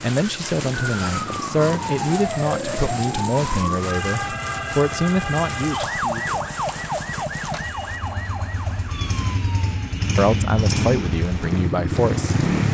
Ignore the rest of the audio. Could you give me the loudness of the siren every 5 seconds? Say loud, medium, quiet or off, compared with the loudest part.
loud, loud, off.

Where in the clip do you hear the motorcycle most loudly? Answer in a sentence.
The loudest moment of the motorcycle is at 12 seconds.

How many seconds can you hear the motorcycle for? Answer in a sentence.
The motorcycle can be heard for 12 seconds in total.